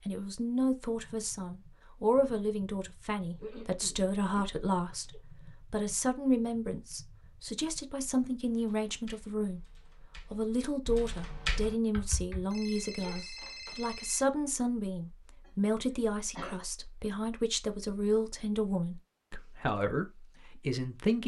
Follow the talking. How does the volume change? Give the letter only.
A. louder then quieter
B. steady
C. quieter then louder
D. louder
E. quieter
B.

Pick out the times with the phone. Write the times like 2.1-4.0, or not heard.
12.5-14.2.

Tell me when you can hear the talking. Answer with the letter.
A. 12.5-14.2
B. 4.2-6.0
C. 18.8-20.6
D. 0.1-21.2
D.